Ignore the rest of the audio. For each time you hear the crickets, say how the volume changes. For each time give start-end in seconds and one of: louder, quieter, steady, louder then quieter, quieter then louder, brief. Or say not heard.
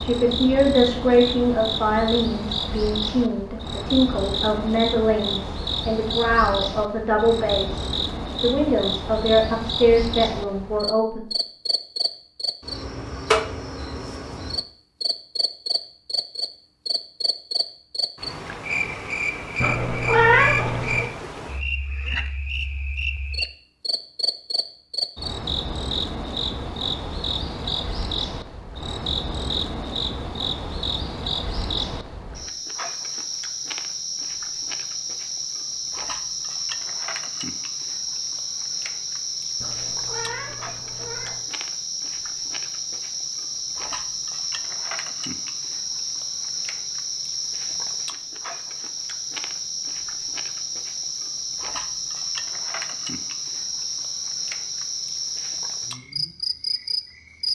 0.0-57.4 steady.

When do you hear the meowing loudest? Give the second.
20 s.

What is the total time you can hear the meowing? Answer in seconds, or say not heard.
3 s.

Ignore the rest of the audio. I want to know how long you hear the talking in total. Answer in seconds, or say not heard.
11 s.